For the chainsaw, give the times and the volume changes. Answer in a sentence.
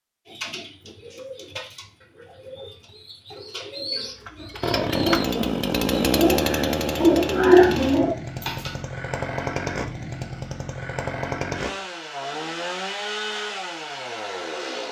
You can hear the chainsaw from 4.2 to 14.8 s, getting quieter.